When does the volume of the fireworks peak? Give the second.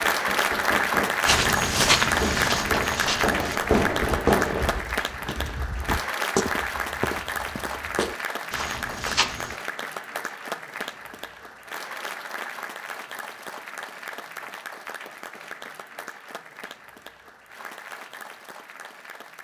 4 s.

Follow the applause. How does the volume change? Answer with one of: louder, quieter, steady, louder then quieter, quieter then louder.
quieter.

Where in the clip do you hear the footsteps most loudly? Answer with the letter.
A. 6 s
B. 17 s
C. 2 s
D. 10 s
C.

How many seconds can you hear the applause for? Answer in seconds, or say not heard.
19 s.